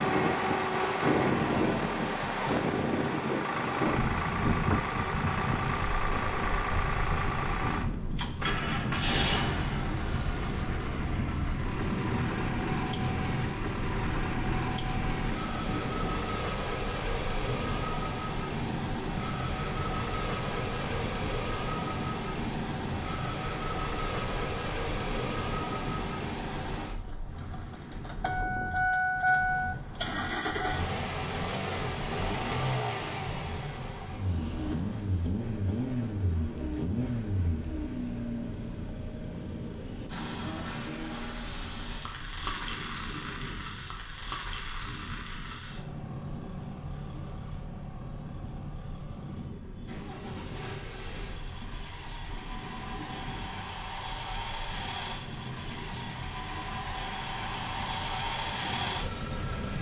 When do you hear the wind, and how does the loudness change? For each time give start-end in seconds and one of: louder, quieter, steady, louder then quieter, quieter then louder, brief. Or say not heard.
0.0-59.7 quieter.